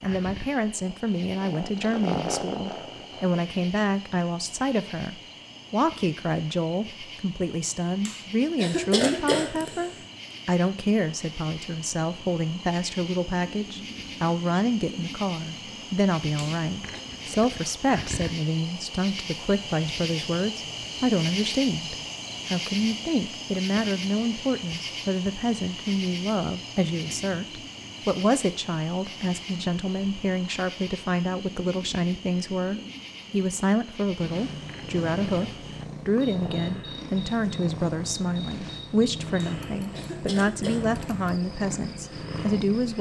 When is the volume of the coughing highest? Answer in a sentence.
The volume of the coughing peaks at 9 seconds.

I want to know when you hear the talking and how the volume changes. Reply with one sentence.
The talking can be heard from 0.0 to 42.9 s, at a steady volume.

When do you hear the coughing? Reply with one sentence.
The coughing can be heard from 8.1 to 9.9 s, from 16.4 to 17.0 s and from 39.4 to 41.0 s.